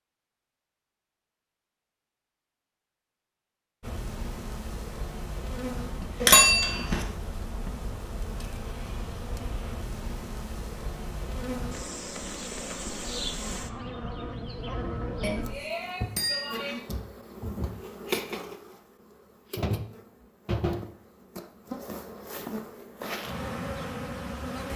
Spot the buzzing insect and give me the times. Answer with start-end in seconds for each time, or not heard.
3.8-24.7.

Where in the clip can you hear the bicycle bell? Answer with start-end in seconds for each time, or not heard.
6.2-7.0, 15.2-16.9.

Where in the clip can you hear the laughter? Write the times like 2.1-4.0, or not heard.
not heard.